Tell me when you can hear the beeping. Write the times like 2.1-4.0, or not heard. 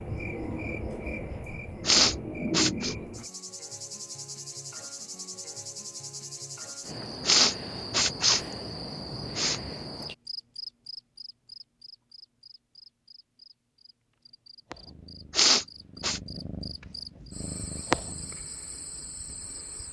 not heard.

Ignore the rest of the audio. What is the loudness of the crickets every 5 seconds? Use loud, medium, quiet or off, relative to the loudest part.
loud, loud, medium, medium.